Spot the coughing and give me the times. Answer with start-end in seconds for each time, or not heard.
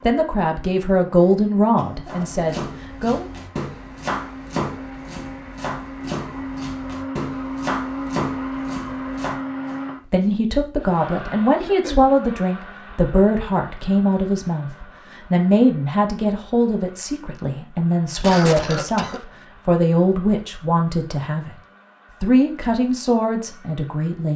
1.8-2.3, 11.6-12.2, 18.2-19.2.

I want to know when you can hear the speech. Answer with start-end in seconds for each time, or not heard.
0.0-3.2, 10.1-21.5, 22.2-24.3.